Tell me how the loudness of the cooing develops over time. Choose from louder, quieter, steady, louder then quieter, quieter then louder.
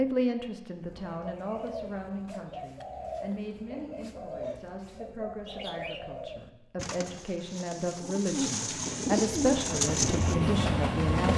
louder.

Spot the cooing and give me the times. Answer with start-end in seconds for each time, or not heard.
0.8-10.6.